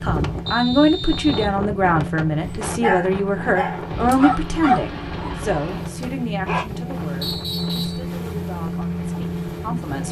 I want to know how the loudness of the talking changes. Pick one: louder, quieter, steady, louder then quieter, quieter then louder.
quieter.